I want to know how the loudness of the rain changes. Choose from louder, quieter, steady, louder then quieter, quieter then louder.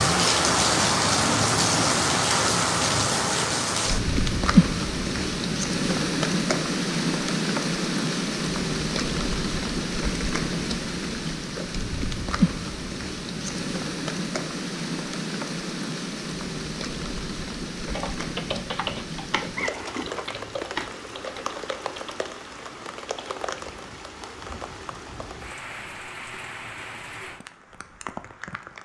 quieter.